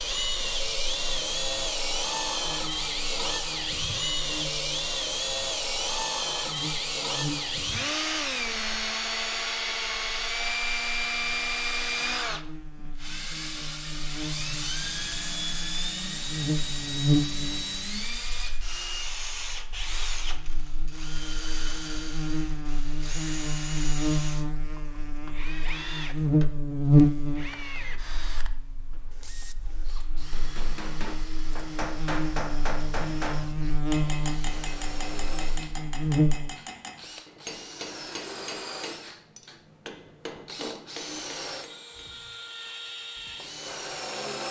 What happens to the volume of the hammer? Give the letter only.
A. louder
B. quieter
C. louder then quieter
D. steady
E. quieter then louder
B.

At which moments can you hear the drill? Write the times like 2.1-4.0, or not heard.
0.0-44.4.